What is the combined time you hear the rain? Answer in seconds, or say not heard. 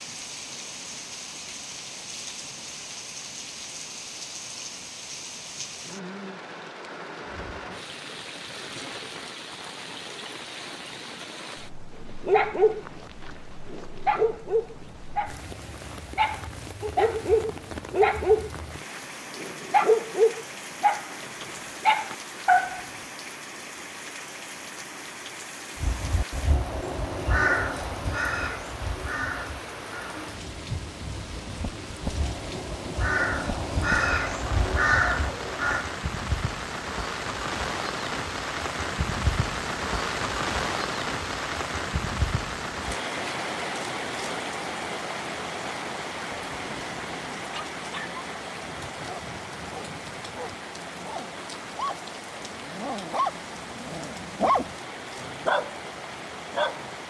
57 s.